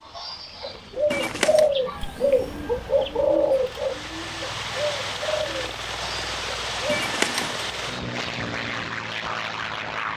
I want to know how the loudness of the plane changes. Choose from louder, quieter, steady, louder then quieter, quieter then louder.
louder.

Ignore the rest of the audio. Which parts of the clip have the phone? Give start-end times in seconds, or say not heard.
1.1-1.7, 6.8-7.7.